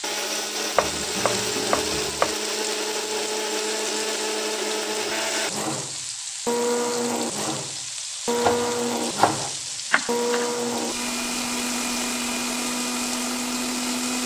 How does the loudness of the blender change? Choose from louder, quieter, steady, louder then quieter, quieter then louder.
steady.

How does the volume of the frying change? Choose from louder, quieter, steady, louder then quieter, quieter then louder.
steady.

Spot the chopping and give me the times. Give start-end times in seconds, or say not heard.
0.8-2.4, 8.3-10.5.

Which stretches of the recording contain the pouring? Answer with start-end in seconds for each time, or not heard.
not heard.